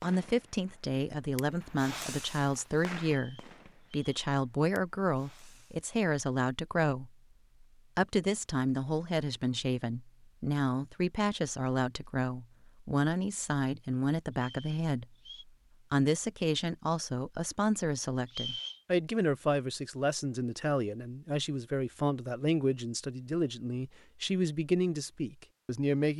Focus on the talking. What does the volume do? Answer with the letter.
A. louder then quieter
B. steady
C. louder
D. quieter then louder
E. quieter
B.